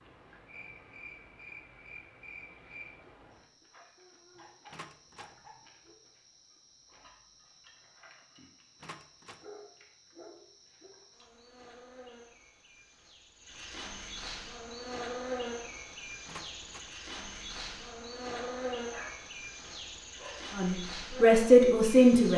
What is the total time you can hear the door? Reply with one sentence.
The door can be heard for 2 seconds in total.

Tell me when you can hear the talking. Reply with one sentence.
The talking can be heard from 20.6 to 22.3 s.